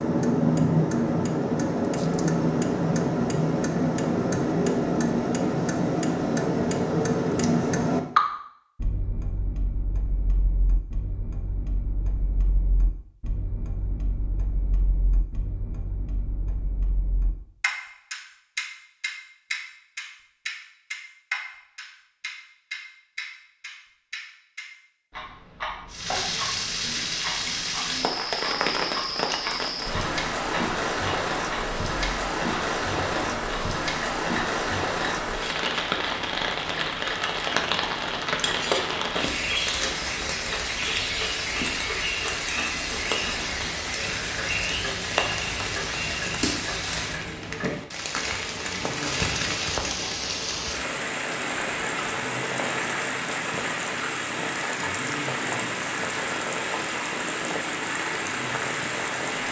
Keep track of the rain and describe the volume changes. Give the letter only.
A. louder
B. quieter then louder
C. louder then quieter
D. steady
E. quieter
D.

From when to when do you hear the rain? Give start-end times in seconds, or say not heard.
25.9-59.4.